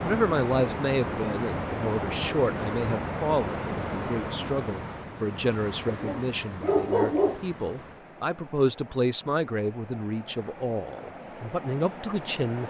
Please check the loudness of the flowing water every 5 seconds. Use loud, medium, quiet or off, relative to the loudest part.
loud, medium, medium.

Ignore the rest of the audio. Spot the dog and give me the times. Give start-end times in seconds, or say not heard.
5.8-7.5.